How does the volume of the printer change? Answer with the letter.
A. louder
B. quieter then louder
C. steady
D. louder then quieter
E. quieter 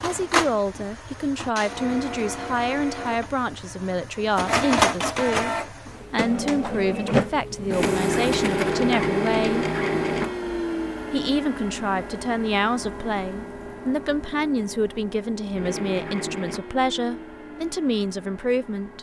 D.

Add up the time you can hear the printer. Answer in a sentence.
The printer can be heard for 19 seconds in total.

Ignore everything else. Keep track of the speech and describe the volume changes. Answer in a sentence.
The volume of the speech stays about the same.